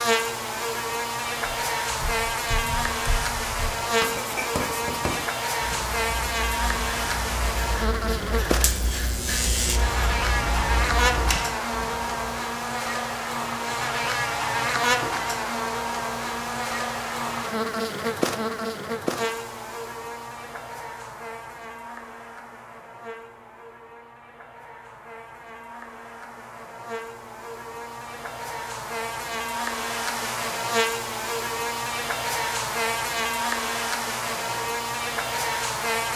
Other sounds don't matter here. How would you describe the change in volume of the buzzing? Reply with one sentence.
The volume of the buzzing goes down, then up.